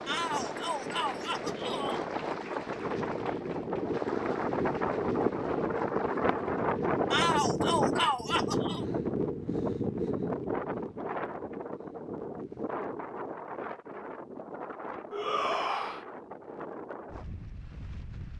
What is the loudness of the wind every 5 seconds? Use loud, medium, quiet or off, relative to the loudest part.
loud, loud, medium, quiet.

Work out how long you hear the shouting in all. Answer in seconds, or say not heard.
5 s.